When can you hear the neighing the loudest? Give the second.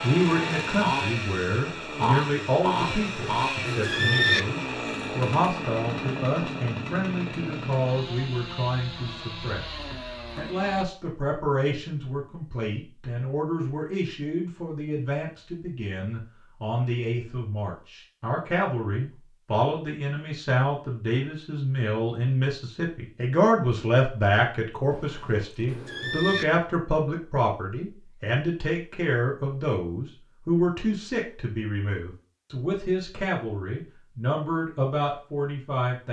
4 s.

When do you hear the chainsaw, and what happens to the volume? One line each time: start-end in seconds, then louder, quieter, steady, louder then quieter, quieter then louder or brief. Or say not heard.
0.0-10.8 quieter.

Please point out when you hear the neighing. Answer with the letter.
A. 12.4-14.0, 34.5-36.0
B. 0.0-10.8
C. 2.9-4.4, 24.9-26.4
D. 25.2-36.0
C.